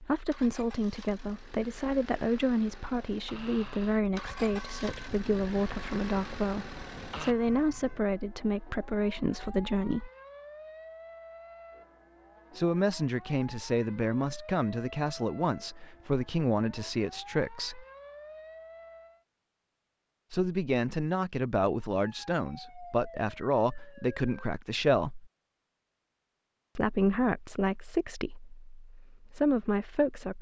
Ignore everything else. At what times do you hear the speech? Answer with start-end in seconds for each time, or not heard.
0.0-10.1, 12.6-17.9, 20.3-25.2, 26.8-30.3.